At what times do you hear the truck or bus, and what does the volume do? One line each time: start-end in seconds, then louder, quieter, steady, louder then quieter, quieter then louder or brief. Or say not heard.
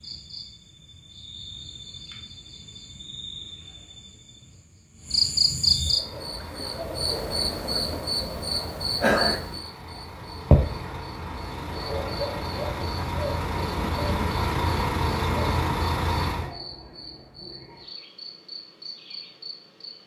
5.8-16.6 louder.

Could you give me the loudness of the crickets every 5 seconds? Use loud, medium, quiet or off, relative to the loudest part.
quiet, loud, loud, quiet.